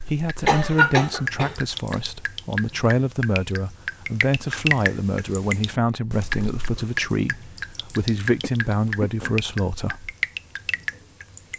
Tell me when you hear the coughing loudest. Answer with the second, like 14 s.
1 s.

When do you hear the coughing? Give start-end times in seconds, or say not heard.
0.5-1.6, 8.4-9.3.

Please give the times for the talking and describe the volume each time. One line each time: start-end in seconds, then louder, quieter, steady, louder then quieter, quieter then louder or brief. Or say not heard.
0.1-10.1 steady.